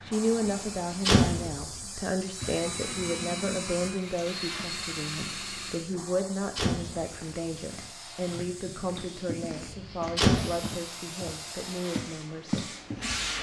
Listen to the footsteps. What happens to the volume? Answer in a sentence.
The volume of the footsteps goes up.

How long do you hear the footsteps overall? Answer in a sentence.
The footsteps can be heard for 6 seconds in total.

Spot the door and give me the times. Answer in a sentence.
You can hear the door from 0.4 to 1.6 s, from 6.0 to 7.2 s and from 9.6 to 10.6 s.